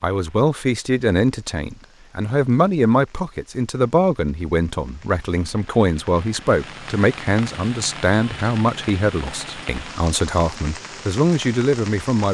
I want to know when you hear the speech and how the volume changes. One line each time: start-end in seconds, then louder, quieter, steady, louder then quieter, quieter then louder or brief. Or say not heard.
0.0-12.2 steady.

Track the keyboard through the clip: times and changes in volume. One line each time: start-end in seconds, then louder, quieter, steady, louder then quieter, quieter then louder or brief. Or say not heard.
not heard.